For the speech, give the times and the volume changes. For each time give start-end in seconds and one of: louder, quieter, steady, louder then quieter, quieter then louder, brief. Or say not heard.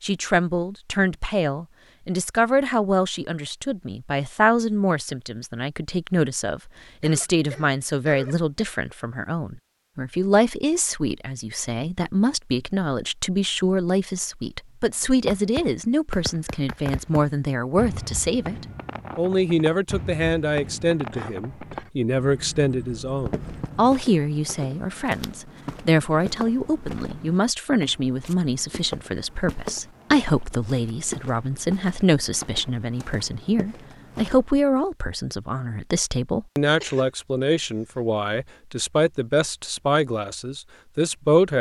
0.0-41.5 steady.